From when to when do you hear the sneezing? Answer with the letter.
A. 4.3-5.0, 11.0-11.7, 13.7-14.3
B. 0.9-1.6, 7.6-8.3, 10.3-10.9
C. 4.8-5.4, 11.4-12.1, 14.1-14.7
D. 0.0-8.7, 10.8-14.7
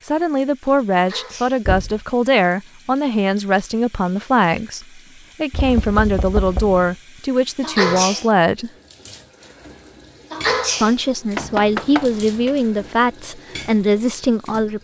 B.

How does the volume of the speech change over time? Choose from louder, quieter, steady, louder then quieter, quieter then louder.
steady.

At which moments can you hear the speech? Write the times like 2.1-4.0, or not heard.
0.0-8.7, 10.8-14.7.